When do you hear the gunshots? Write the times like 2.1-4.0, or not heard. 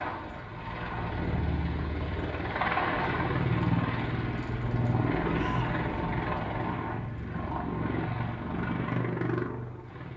not heard.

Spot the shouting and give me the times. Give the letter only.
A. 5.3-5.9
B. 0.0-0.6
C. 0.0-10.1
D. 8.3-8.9
A.